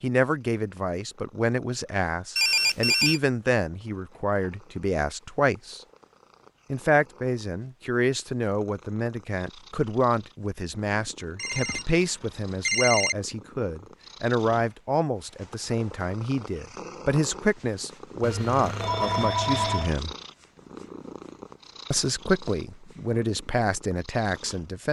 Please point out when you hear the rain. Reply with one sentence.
You can't hear the rain here.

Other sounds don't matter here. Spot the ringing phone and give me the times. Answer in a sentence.
The ringing phone can be heard from 2.4 to 3.2 s, from 11.3 to 13.2 s and from 18.2 to 19.9 s.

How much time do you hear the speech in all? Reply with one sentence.
You can hear the speech for 22 seconds altogether.